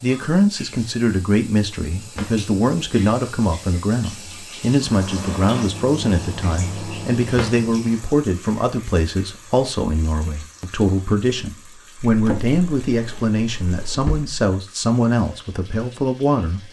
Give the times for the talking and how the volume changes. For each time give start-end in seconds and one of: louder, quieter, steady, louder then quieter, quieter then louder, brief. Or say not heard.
0.0-16.6 steady.